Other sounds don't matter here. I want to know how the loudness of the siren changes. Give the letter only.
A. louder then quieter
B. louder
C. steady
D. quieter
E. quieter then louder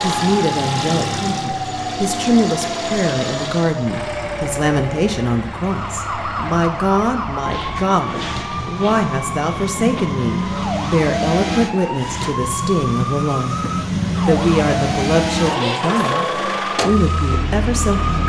C.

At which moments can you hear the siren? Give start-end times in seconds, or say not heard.
0.2-18.2.